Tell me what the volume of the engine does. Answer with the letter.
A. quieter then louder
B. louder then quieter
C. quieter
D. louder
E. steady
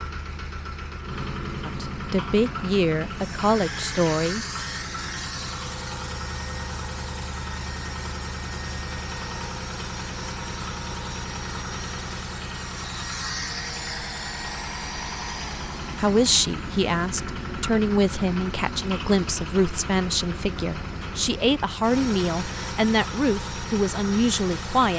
E.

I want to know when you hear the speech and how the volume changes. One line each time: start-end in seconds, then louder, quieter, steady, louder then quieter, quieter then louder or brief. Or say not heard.
1.6-4.5 brief
15.9-24.9 steady.